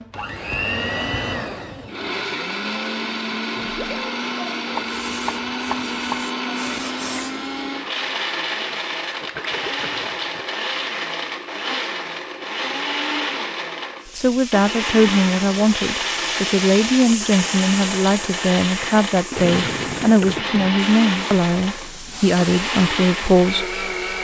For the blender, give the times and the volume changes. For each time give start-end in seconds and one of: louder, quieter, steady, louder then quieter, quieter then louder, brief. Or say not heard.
0.0-24.1 steady.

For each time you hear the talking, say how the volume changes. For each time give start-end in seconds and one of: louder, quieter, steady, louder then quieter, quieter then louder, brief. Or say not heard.
14.2-24.1 steady.